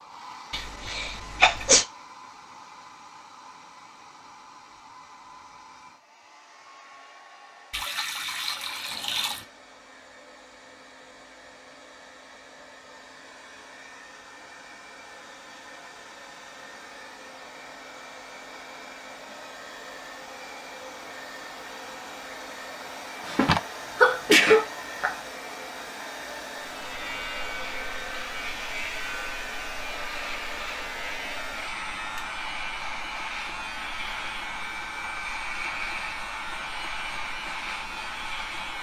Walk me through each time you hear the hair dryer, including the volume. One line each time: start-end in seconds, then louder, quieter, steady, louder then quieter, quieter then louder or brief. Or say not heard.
0.0-38.7 louder.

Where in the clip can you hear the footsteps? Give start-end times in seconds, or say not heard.
not heard.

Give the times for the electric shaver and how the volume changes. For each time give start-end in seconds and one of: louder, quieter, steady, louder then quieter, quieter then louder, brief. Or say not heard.
26.6-38.7 steady.